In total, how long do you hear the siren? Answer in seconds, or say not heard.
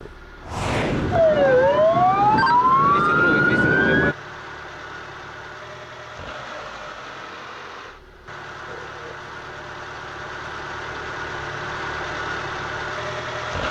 4 s.